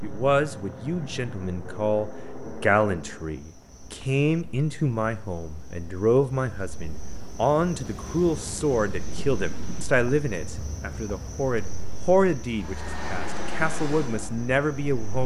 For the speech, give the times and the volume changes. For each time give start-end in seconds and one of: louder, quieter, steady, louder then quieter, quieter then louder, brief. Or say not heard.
0.0-15.2 steady.